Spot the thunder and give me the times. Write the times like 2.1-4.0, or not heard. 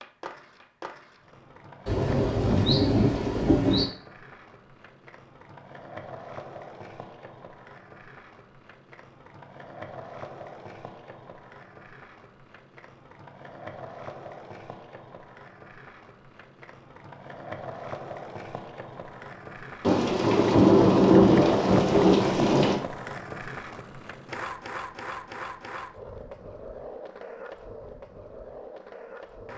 1.9-3.9, 19.8-22.8.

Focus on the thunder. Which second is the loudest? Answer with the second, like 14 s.
21 s.